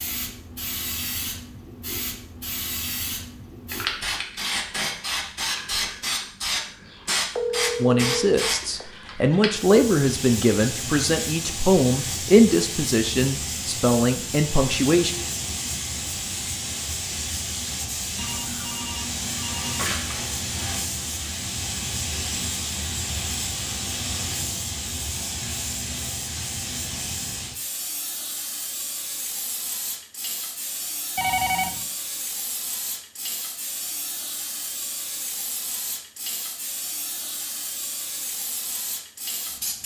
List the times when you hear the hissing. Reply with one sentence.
The hissing can be heard from 0.0 to 39.8 s.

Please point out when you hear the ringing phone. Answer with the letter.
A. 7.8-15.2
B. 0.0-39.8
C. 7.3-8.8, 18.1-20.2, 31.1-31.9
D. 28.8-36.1
C.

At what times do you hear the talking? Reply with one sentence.
The talking can be heard from 7.8 to 15.2 s.